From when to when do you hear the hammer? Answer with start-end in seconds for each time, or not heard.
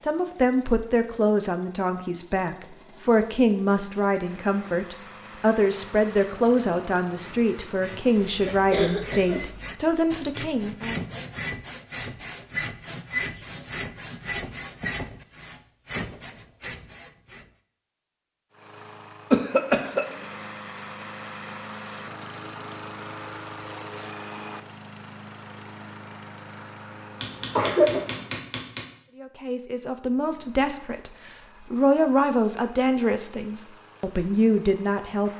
27.2-28.9.